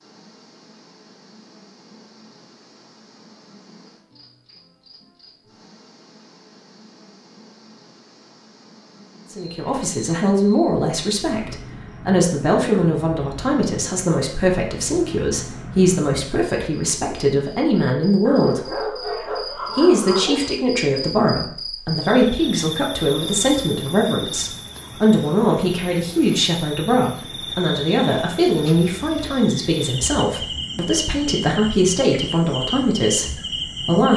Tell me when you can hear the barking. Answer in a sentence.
The barking can be heard from 18.2 to 20.5 s.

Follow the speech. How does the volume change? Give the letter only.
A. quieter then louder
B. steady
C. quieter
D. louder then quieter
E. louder
B.